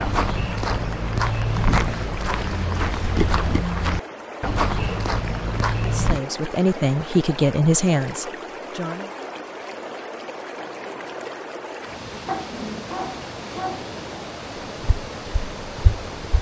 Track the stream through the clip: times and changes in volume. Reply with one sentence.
The stream can be heard from 0.0 to 16.3 s, at a steady volume.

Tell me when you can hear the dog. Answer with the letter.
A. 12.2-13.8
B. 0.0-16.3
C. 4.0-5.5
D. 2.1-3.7
A.